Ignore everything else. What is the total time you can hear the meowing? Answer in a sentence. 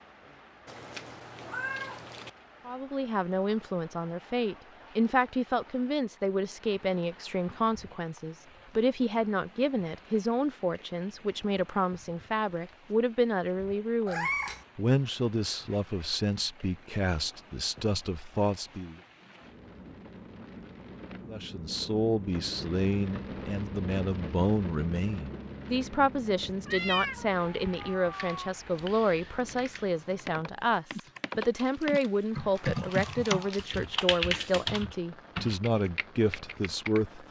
The meowing can be heard for 4 seconds in total.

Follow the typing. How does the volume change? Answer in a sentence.
The volume of the typing goes up, then down.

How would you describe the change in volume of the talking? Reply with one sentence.
The volume of the talking stays about the same.